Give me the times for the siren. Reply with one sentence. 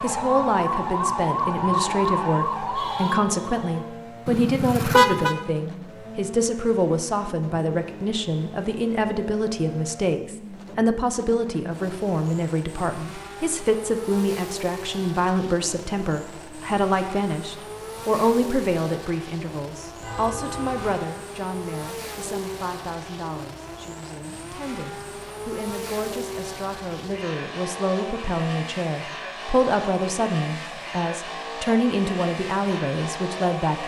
The siren can be heard from 0.0 to 3.9 s.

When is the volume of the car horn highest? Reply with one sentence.
The volume of the car horn peaks at 5 seconds.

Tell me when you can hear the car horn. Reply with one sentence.
The car horn can be heard from 4.2 to 5.3 s and from 20.0 to 21.1 s.